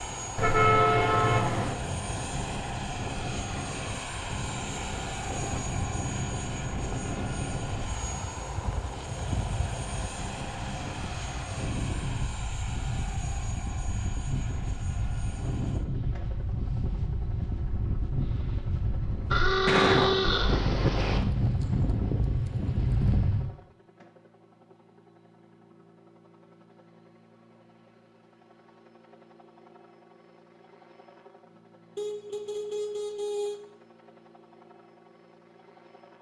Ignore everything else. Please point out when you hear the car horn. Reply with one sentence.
You can hear the car horn from 0.3 to 1.8 s, from 19.3 to 21.2 s and from 31.9 to 33.6 s.